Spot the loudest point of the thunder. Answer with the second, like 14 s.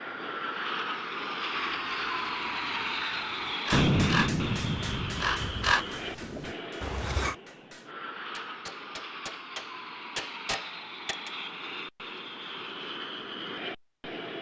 4 s.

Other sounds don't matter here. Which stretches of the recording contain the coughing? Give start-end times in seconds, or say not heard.
not heard.